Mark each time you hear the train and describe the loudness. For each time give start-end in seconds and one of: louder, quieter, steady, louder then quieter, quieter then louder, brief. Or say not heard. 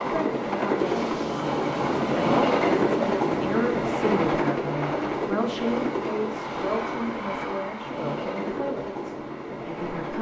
0.0-10.1 quieter.